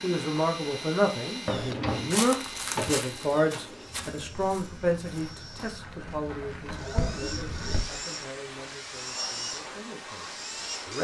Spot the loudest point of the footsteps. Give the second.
2 s.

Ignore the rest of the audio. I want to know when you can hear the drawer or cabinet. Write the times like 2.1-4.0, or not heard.
1.6-3.0.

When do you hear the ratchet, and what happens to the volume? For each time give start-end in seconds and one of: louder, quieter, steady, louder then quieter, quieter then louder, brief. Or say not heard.
not heard.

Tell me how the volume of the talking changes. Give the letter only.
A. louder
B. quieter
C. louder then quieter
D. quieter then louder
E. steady
B.